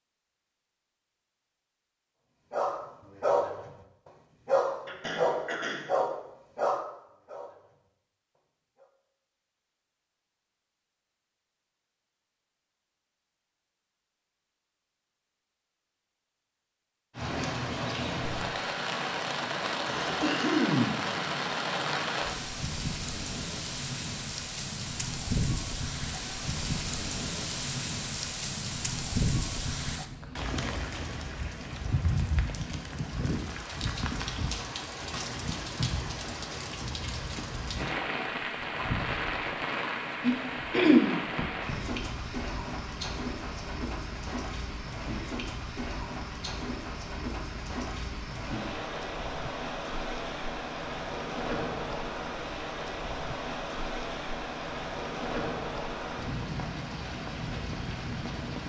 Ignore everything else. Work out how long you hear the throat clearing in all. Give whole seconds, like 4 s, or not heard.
3 s.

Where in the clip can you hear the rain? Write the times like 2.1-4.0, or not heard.
17.1-58.6.